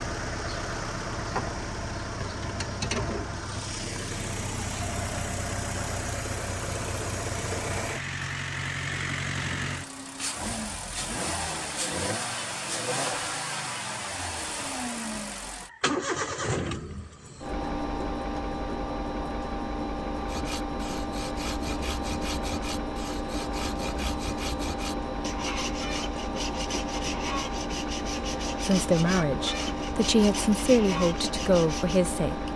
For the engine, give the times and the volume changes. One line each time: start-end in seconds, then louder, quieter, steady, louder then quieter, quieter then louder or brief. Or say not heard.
0.0-32.5 steady.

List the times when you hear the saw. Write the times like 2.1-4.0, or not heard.
20.2-32.0.